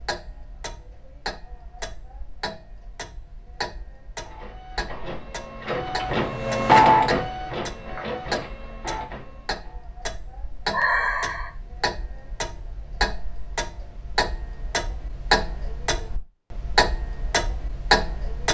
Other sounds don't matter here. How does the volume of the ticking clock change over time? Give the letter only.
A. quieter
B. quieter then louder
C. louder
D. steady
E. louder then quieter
C.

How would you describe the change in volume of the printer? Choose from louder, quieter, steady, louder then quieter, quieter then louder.
louder then quieter.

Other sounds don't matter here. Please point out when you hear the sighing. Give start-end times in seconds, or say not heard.
10.7-11.5.